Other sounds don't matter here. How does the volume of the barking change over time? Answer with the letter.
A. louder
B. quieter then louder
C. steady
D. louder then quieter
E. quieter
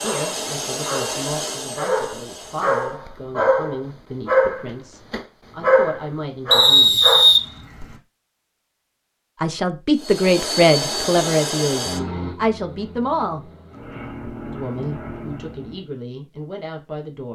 A.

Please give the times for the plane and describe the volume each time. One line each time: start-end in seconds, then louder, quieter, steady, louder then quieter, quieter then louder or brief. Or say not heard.
0.0-3.0 brief
9.9-15.9 quieter then louder.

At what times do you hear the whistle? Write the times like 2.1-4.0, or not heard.
6.5-7.9.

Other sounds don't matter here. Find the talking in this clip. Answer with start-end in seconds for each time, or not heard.
0.0-7.0, 9.4-13.5, 14.5-17.3.